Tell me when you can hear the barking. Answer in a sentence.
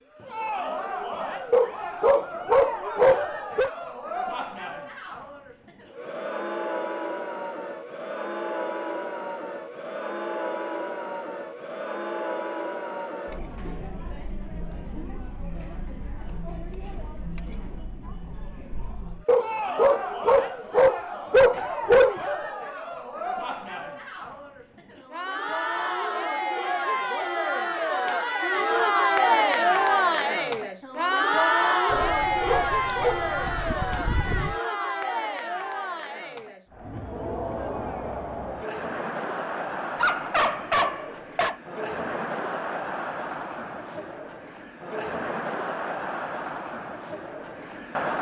You can hear the barking from 1.5 to 3.7 s, from 19.2 to 22.1 s, from 31.9 to 34.5 s and from 40.0 to 41.5 s.